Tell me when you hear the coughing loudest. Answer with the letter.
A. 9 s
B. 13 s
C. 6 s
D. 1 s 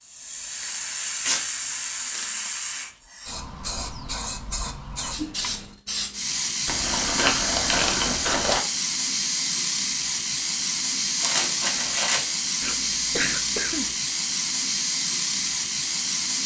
B.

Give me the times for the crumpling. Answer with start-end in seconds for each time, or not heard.
0.6-2.6, 6.7-8.6, 11.2-12.3.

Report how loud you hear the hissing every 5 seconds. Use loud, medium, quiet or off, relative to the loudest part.
medium, loud, loud, loud.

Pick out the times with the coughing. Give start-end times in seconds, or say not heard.
5.2-5.8, 12.6-13.9.